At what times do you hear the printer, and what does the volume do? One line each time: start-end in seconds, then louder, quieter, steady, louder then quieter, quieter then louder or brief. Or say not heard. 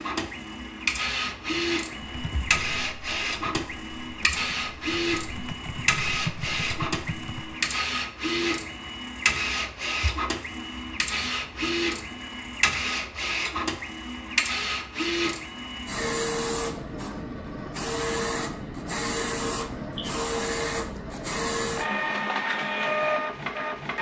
0.0-23.9 steady.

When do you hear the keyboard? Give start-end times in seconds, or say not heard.
2.0-7.6.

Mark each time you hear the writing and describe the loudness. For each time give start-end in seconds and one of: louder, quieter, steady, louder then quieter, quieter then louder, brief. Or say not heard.
not heard.